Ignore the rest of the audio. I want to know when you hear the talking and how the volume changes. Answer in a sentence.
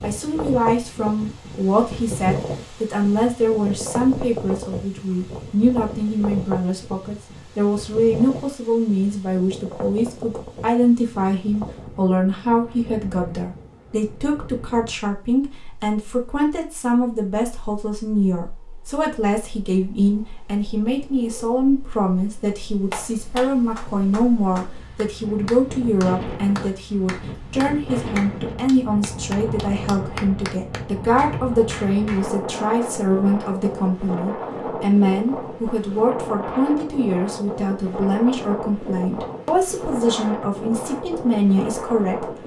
You can hear the talking from 0.0 to 42.2 s, at a steady volume.